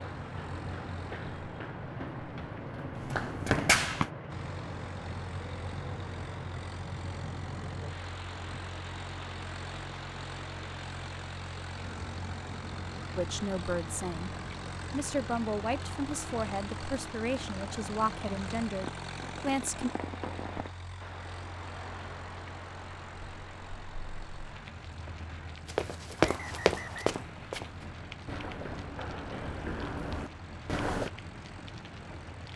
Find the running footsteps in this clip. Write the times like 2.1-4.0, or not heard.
0.1-4.1, 25.6-31.1.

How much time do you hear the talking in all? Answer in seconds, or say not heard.
7 s.